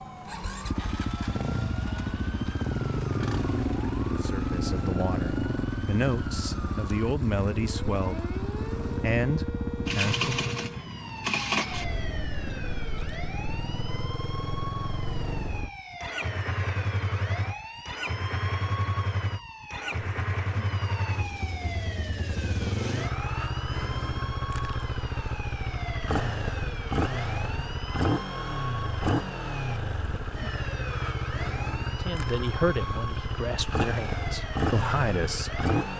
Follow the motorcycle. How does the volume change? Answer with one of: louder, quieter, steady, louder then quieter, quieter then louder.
steady.